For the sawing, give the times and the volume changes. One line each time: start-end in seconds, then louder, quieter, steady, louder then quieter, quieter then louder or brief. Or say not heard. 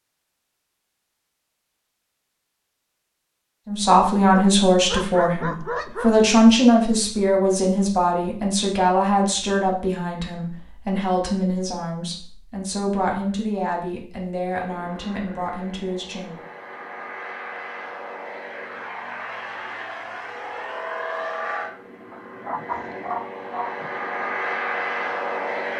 not heard.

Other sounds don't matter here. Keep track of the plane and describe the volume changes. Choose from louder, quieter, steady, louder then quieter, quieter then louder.
louder.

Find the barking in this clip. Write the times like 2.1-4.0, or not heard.
4.3-6.2, 22.1-23.9.